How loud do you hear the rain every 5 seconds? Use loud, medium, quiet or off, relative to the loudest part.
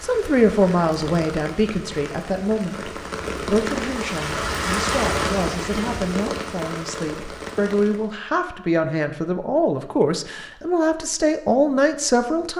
loud, loud, off.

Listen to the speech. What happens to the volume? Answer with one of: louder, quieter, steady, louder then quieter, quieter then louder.
quieter then louder.